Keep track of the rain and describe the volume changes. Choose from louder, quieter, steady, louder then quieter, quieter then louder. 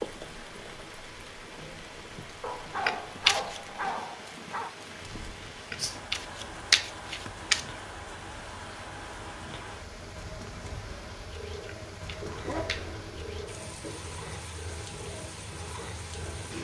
steady.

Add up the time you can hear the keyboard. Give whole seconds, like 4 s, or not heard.
not heard.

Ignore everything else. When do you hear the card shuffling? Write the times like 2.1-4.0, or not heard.
2.9-3.6, 5.7-7.6, 11.7-12.9.